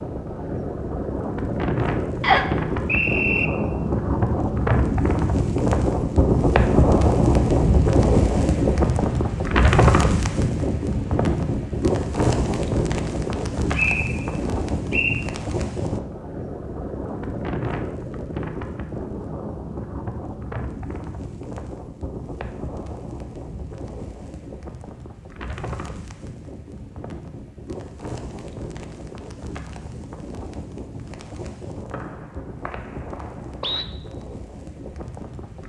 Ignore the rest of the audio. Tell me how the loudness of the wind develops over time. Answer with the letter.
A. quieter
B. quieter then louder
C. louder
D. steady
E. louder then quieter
A.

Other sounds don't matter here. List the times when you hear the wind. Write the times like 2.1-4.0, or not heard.
0.0-35.6.